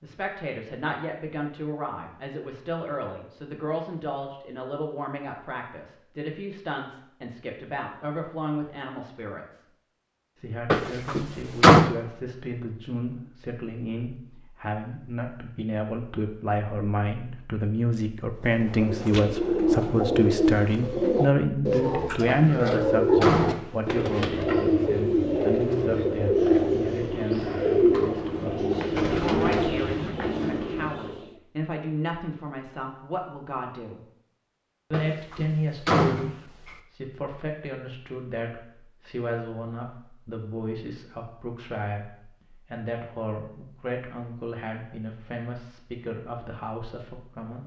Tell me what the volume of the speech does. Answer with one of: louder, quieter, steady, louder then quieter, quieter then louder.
louder then quieter.